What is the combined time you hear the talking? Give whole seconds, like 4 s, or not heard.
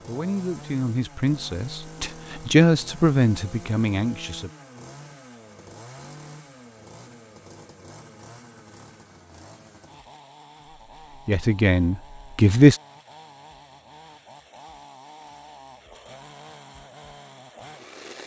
6 s.